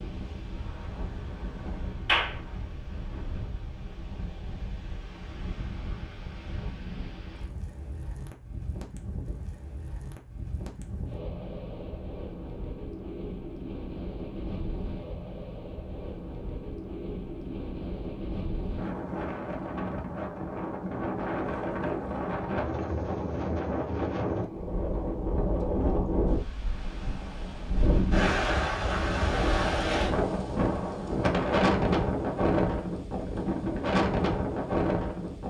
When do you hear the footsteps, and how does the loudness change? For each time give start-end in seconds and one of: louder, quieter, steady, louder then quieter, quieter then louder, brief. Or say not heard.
not heard.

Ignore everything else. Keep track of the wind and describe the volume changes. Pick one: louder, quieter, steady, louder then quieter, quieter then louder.
louder.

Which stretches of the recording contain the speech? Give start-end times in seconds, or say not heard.
not heard.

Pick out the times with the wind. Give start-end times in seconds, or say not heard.
0.0-35.4.